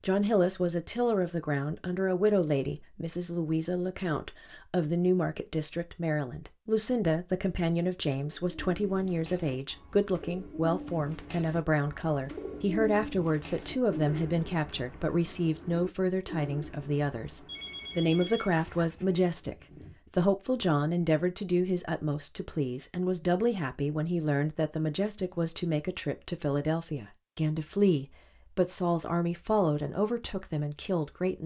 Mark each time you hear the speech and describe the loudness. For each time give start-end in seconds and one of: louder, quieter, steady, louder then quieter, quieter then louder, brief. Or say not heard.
0.0-31.4 steady.